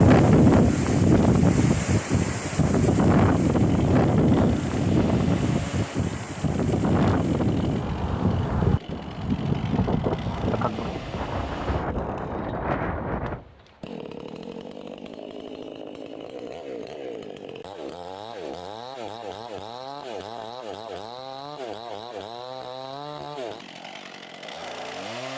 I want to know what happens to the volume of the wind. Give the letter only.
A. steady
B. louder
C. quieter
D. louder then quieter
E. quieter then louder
C.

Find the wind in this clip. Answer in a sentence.
You can hear the wind from 0.0 to 13.4 s.